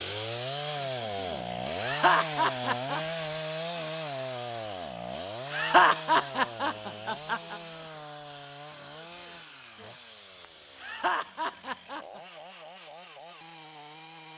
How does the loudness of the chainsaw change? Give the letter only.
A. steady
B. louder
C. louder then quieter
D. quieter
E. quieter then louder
D.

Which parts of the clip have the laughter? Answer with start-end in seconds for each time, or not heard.
1.8-3.0, 5.5-7.5, 10.8-12.2.